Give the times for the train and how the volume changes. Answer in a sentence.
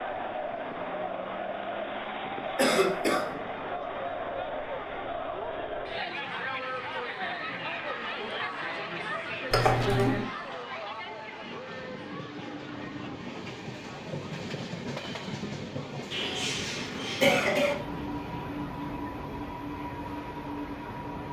You can hear the train from 0.0 to 21.2 s, getting louder.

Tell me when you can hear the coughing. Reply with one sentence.
You can hear the coughing from 2.5 to 3.2 s, from 9.5 to 10.2 s and from 16.1 to 17.8 s.